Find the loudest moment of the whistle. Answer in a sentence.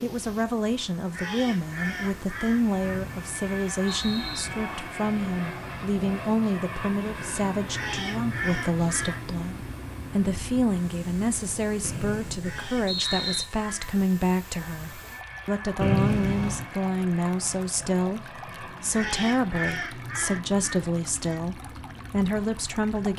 The loudest moment of the whistle is at 16 seconds.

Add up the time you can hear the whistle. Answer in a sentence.
You can hear the whistle for 4 seconds altogether.